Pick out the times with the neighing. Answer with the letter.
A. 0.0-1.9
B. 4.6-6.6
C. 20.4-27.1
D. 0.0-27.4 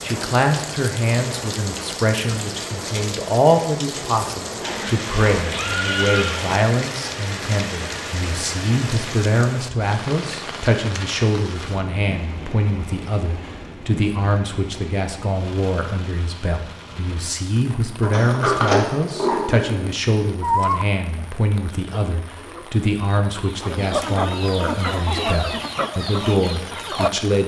B.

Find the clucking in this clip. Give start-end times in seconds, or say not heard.
20.4-27.1.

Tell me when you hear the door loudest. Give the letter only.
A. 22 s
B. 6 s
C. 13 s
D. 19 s
D.